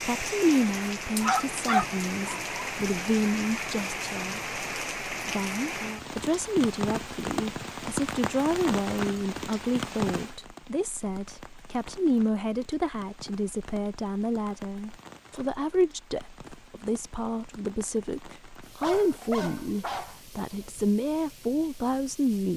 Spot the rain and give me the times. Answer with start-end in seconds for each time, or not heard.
0.0-22.5.